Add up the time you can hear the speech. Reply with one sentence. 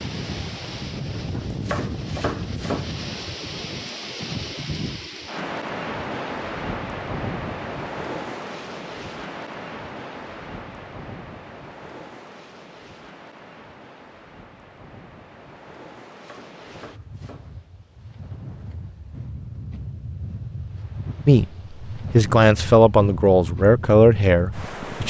You can hear the speech for 4 seconds altogether.